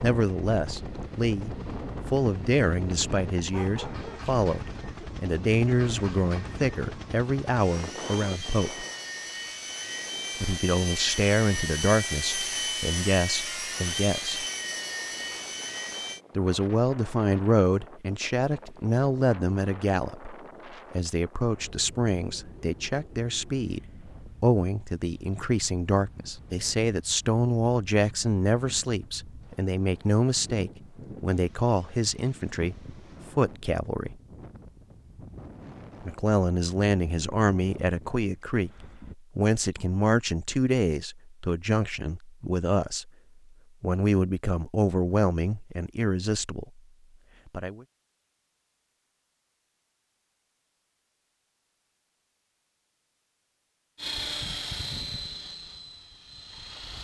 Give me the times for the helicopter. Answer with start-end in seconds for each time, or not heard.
0.0-16.2, 54.0-57.0.